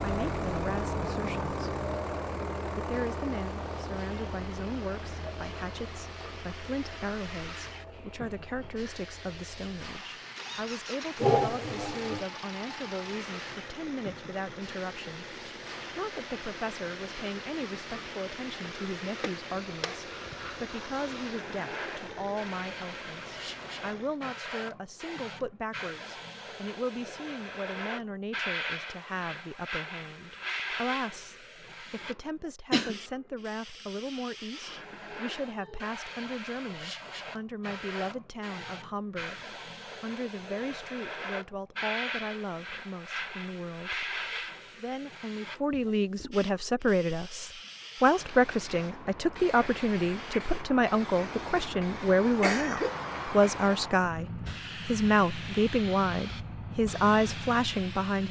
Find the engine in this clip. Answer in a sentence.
You can hear the engine from 0.0 to 24.2 s.